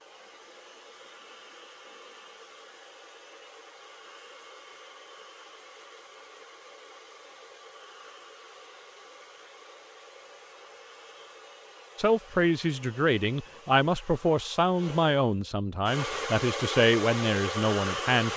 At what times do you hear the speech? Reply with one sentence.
The speech can be heard from 11.9 to 18.3 s.